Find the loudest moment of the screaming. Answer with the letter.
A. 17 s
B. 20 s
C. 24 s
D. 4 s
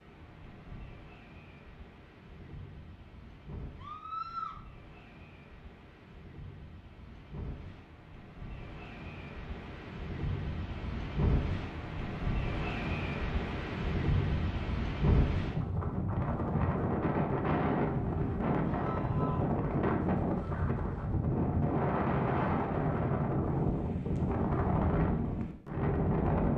D.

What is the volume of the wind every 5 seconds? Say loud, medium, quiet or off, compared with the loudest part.
quiet, quiet, medium, loud, loud, loud.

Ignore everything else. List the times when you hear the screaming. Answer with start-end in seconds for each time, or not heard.
3.8-4.6, 18.6-19.6.